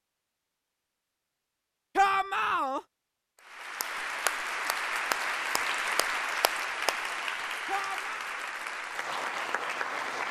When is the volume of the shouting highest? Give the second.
2 s.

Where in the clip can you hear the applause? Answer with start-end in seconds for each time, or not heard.
3.4-10.2.